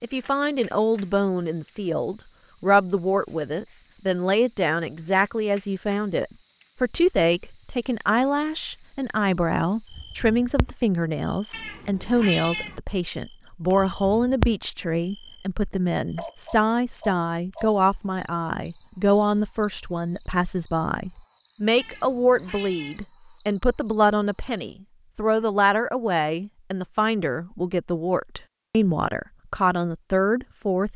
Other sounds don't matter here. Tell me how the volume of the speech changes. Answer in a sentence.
The volume of the speech stays about the same.